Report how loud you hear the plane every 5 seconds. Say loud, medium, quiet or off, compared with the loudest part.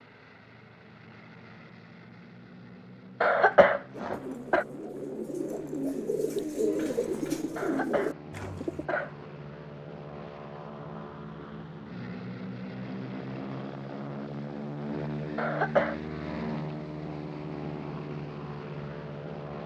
quiet, medium, loud, loud.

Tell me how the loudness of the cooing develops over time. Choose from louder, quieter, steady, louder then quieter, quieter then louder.
louder.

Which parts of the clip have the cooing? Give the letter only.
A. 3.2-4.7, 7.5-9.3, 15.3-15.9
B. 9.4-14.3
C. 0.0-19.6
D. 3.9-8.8
D.